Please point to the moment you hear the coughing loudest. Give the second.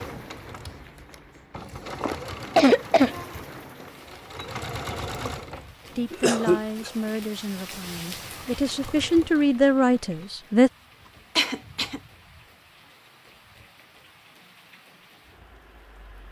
3 s.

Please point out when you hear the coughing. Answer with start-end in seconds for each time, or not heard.
2.0-3.2, 6.1-6.9, 11.3-12.0.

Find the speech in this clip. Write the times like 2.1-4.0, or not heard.
6.0-10.7.